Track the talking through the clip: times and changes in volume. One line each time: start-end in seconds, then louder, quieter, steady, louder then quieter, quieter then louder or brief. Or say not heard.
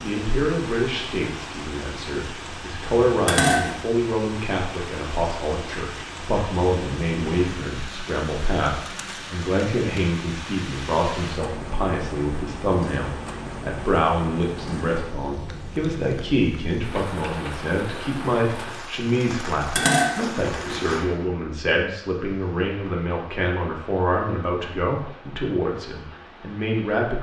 0.0-27.1 steady.